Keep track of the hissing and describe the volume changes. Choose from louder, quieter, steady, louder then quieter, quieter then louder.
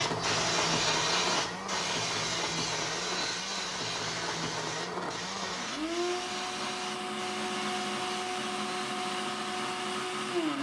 quieter.